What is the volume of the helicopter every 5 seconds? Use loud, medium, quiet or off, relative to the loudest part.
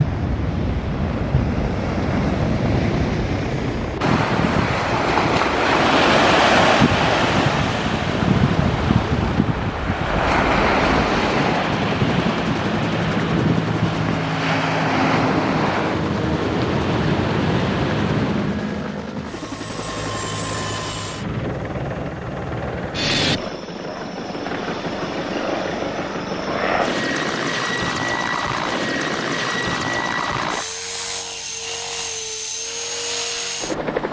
medium, medium, loud, loud, loud, loud, loud.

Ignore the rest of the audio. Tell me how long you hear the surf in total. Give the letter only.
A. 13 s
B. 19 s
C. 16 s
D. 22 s
B.